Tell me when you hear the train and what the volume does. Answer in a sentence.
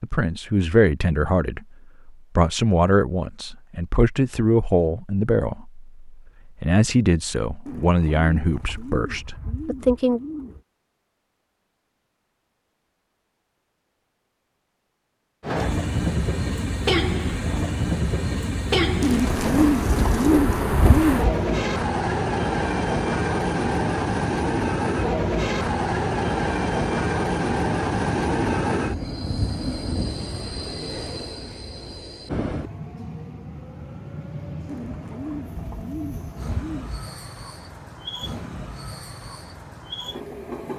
The train can be heard from 15.4 to 40.7 s, getting quieter.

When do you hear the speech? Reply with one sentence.
The speech can be heard from 0.0 to 10.2 s.